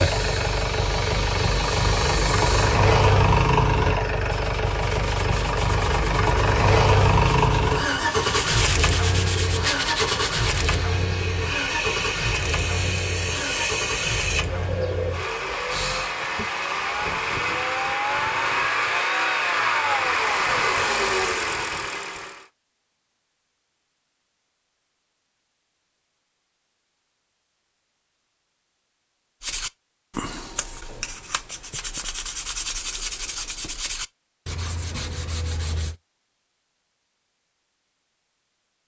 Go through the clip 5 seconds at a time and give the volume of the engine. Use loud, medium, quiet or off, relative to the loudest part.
loud, loud, medium, loud, loud, off, off, off.